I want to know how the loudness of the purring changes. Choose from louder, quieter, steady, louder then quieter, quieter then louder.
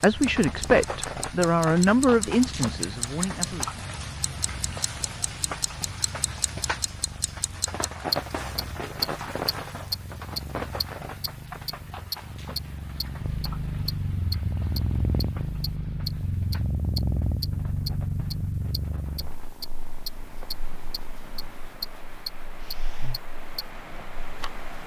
louder then quieter.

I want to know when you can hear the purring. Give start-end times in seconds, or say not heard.
0.0-24.8.